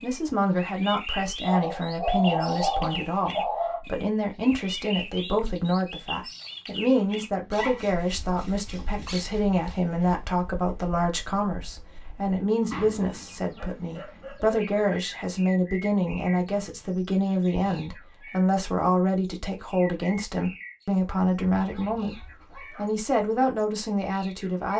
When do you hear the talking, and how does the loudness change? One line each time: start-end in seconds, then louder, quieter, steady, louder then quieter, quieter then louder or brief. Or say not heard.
0.0-24.7 steady.